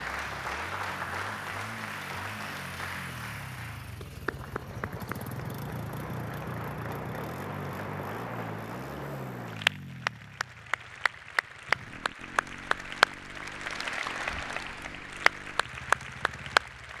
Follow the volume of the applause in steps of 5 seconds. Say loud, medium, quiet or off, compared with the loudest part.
medium, medium, loud, loud.